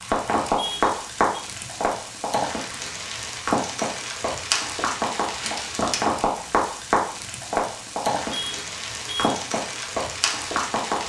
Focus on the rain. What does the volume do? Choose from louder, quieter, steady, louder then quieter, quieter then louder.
steady.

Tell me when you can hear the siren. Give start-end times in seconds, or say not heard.
not heard.